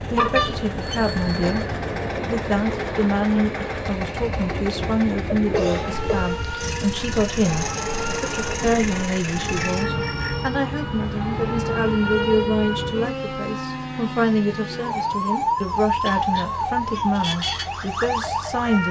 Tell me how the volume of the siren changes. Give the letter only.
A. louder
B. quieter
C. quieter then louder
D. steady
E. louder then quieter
A.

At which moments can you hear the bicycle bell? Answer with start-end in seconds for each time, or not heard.
0.1-1.4, 9.6-10.6.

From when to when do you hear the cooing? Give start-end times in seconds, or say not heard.
not heard.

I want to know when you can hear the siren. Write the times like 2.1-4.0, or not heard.
5.5-18.8.